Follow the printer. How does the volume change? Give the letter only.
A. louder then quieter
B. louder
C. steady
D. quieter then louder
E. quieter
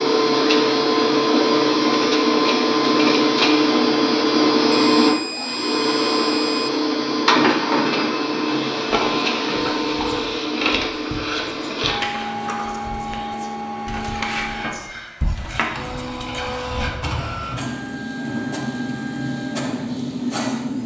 E.